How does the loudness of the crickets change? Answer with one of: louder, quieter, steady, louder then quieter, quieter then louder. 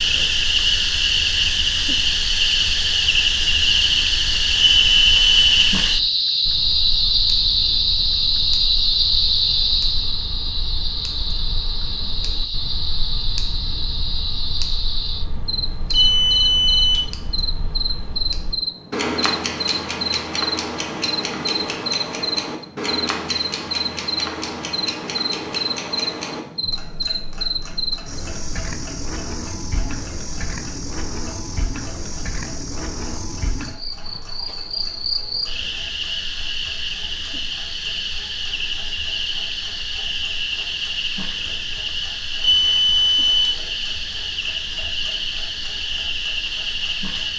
quieter.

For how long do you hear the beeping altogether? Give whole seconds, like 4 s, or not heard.
3 s.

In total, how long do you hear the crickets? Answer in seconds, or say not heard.
47 s.